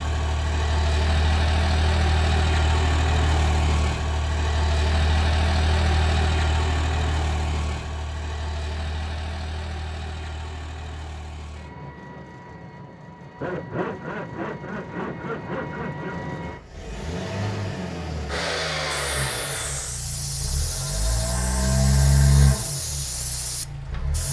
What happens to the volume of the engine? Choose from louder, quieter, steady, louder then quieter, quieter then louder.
quieter then louder.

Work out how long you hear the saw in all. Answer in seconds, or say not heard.
3 s.